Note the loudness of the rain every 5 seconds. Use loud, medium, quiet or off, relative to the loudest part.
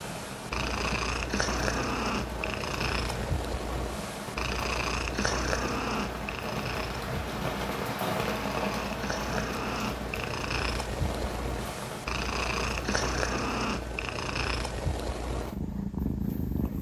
medium, loud, medium, off.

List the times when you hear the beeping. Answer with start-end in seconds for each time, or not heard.
not heard.